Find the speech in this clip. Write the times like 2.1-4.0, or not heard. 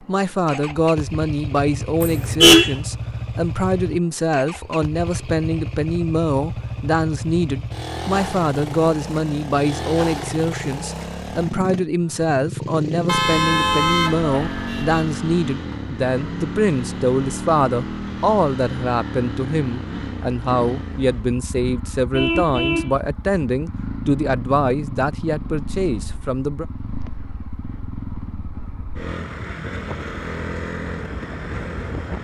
0.0-26.6.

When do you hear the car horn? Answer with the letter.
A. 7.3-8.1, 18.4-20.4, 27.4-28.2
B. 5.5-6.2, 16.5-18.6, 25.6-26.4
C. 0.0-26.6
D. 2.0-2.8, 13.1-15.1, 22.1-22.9
D.